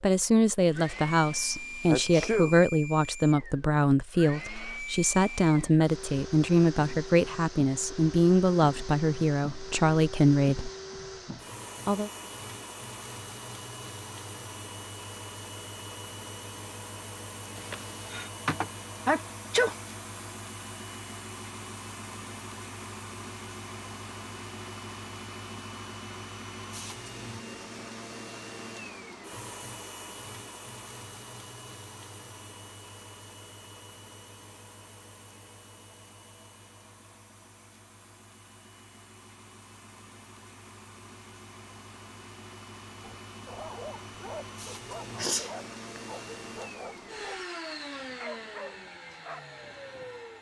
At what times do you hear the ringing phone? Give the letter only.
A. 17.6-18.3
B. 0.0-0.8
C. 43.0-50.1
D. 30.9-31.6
A.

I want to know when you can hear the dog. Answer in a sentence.
You can hear the dog from 43.0 to 50.1 s.